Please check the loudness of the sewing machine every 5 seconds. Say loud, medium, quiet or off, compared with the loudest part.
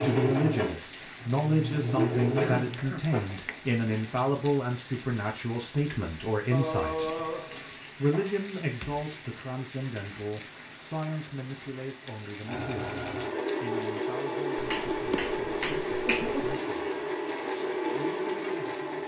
loud, off, loud, loud.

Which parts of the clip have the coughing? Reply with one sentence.
You can hear the coughing from 2.4 to 3.0 s, from 6.5 to 8.4 s and from 16.1 to 16.5 s.